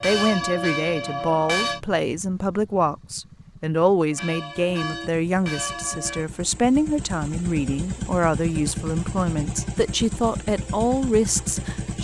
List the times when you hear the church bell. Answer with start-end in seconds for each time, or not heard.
0.0-1.8, 4.1-6.2.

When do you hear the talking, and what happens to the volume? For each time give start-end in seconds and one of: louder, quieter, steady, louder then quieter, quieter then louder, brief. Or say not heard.
0.0-11.9 steady.